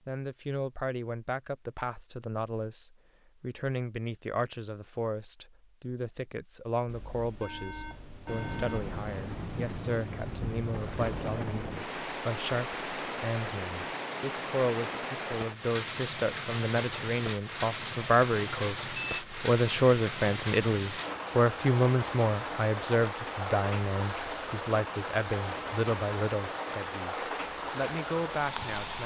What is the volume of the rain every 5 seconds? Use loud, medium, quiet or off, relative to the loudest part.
off, loud, loud, loud, loud, loud.